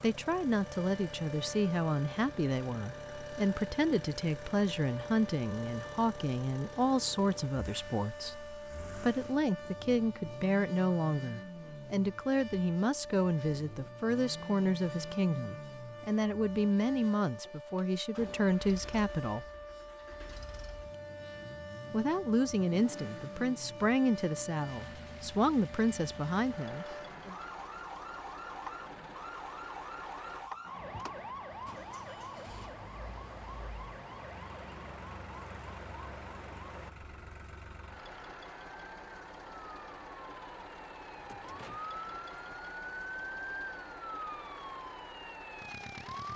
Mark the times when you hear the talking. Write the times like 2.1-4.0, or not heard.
0.0-19.4, 21.9-27.4.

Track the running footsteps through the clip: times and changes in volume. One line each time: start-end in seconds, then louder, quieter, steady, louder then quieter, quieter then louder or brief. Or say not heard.
not heard.